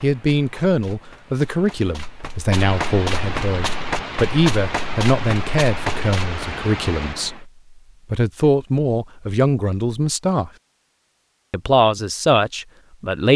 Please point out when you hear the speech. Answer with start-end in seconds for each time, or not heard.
0.0-7.5, 8.1-10.5, 11.5-13.3.